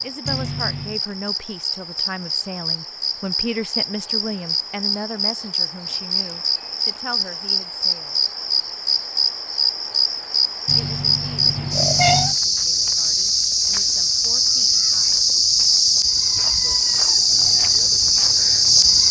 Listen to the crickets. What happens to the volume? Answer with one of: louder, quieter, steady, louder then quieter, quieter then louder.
louder.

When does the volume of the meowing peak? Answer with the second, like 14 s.
12 s.